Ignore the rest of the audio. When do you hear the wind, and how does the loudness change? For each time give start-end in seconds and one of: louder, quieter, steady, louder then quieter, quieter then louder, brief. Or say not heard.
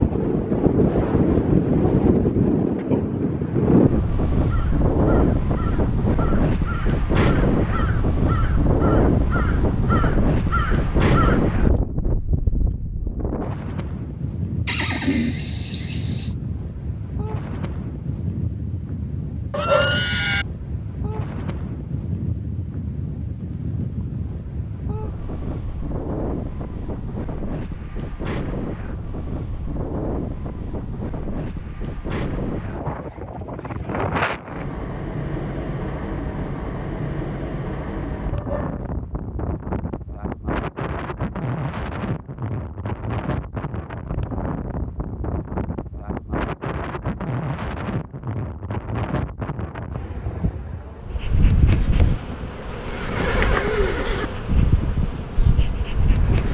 0.0-56.5 quieter.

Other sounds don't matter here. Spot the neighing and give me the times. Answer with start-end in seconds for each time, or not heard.
14.7-16.4, 19.6-20.4, 52.9-54.3.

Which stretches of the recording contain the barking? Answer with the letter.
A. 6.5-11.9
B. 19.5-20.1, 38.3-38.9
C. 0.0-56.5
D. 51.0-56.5
B.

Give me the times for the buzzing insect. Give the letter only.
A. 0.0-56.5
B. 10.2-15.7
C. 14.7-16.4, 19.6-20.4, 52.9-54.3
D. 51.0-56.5
D.